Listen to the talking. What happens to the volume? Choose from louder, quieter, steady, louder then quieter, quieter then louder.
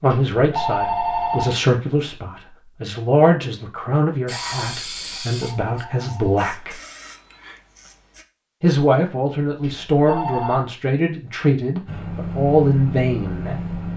steady.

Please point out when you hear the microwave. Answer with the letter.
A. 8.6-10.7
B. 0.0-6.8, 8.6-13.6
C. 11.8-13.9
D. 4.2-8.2
C.